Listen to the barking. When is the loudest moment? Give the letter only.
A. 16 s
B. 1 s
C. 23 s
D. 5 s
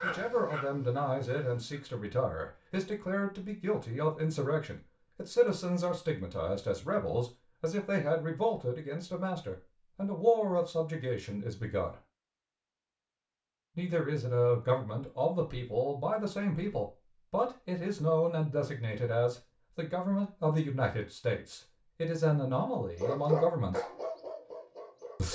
C.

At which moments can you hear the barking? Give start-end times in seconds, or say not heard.
0.0-1.8, 22.9-25.3.